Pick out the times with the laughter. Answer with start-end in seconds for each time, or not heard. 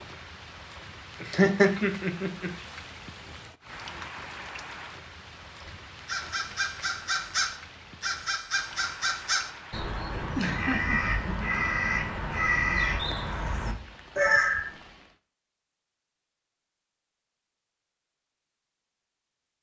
1.2-2.5, 10.3-11.5.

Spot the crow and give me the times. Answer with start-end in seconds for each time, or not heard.
5.6-14.7.